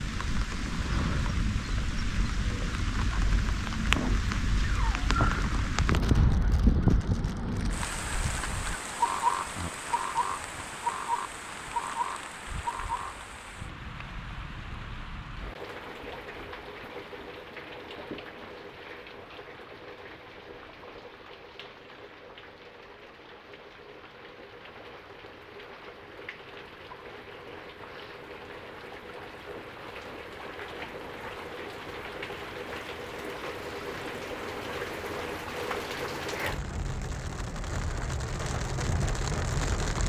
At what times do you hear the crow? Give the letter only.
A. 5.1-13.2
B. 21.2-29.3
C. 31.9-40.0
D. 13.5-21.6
A.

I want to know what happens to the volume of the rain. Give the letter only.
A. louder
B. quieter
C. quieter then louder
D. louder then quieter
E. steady
C.